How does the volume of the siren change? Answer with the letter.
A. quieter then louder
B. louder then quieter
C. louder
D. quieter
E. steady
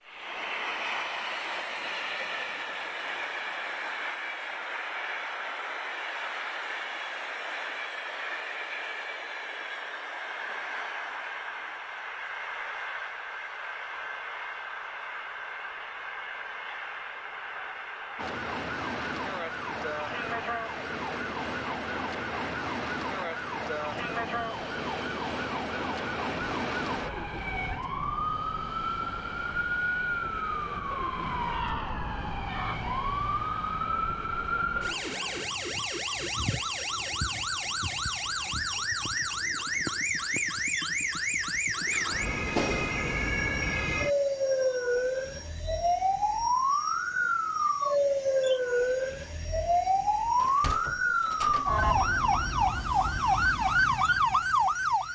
C.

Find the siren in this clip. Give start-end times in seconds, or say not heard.
18.1-55.1.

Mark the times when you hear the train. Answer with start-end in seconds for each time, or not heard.
0.0-55.1.